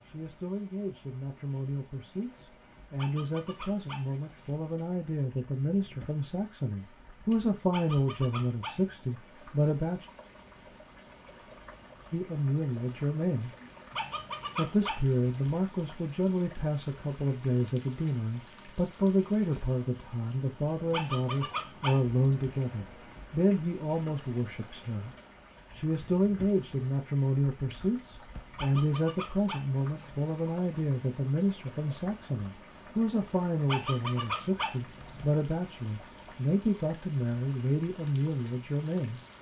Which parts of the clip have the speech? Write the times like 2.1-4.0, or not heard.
0.1-10.1, 12.1-13.5, 14.6-25.1, 25.7-39.2.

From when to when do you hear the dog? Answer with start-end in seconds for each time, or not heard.
3.0-4.6, 7.7-9.2, 13.9-15.6, 20.9-22.6, 28.6-30.2, 33.6-35.3.